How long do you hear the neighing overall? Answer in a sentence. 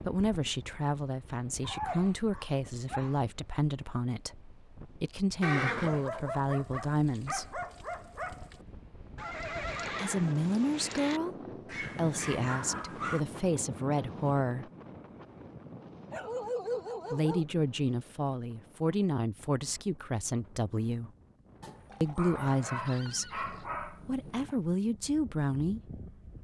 You can hear the neighing for 5 seconds altogether.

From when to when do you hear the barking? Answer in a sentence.
You can hear the barking from 1.6 to 3.2 s, from 5.8 to 8.6 s, from 11.7 to 13.2 s, from 16.1 to 17.9 s and from 21.6 to 24.6 s.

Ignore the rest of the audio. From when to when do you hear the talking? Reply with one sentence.
You can hear the talking from 0.1 to 7.6 s, from 9.9 to 14.7 s, from 17.1 to 21.1 s and from 22.0 to 25.8 s.